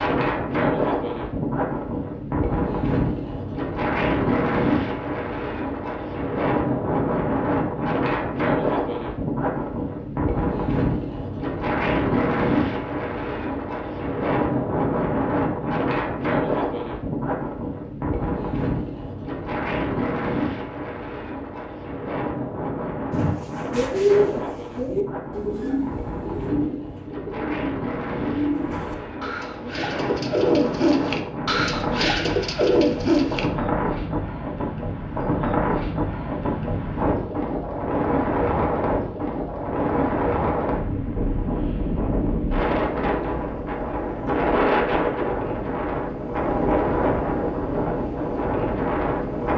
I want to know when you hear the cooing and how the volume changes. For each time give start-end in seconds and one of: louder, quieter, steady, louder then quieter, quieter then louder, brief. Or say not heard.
23.1-33.5 quieter then louder.